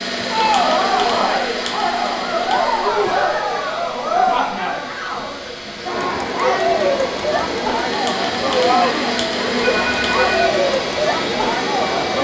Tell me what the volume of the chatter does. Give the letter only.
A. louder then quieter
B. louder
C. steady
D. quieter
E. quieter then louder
C.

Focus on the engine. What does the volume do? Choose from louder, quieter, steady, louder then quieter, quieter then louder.
quieter then louder.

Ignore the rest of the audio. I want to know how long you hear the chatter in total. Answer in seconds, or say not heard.
12 s.